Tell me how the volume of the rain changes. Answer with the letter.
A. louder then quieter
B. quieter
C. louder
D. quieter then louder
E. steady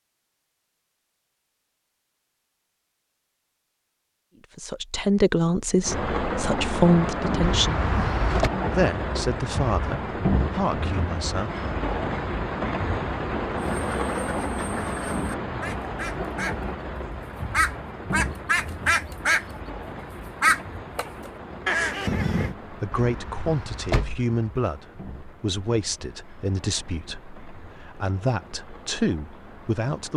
B.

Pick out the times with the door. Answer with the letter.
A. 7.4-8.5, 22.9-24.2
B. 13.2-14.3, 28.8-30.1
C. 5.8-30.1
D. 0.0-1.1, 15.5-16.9
A.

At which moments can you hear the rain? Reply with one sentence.
You can hear the rain from 5.8 to 30.1 s.